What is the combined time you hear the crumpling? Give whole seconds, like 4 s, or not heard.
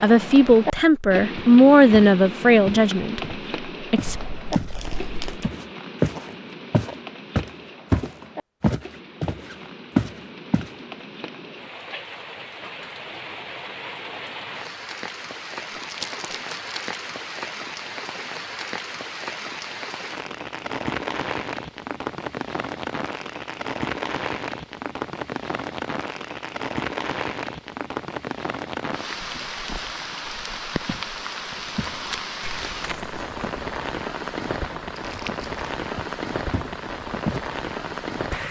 3 s.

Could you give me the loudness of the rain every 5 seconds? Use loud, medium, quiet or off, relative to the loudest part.
loud, medium, medium, loud, loud, loud, loud, loud.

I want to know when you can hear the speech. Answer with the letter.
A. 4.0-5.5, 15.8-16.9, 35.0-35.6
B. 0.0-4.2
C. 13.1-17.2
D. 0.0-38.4
B.